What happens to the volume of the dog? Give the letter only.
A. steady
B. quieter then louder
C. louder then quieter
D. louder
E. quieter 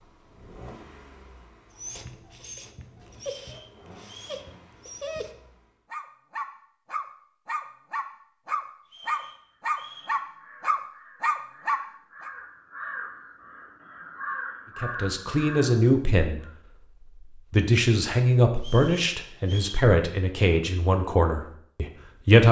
D.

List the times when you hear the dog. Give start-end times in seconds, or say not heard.
1.8-12.3.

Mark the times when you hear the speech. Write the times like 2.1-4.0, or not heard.
14.8-22.4.